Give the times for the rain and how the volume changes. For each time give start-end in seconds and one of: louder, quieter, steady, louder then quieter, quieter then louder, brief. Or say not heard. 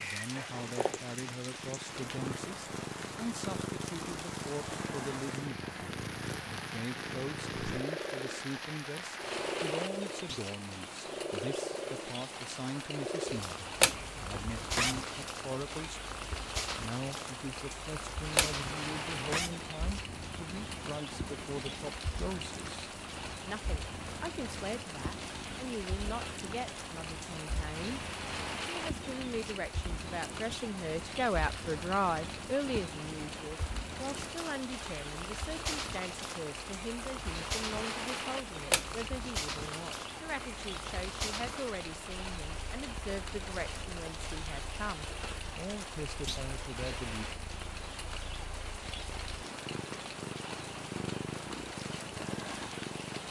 0.0-53.2 steady.